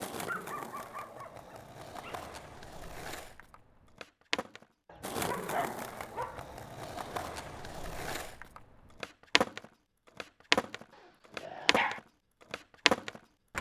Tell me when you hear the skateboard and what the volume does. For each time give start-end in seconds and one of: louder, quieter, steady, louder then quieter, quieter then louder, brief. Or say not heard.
0.0-13.5 louder.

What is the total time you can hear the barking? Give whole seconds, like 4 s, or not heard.
5 s.